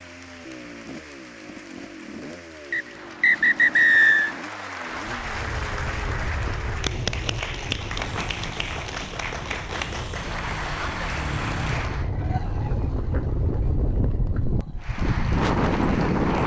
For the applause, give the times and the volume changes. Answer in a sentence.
The applause can be heard from 0.0 to 12.1 s, getting louder; and briefly from 14.8 to 16.4 s.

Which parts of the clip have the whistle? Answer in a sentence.
You can hear the whistle from 2.7 to 4.3 s.